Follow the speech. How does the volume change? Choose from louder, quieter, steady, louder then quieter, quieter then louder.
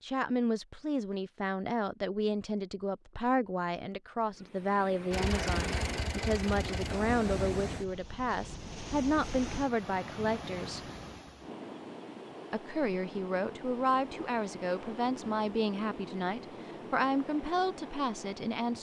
steady.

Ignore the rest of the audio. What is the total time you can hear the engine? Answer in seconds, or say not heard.
2 s.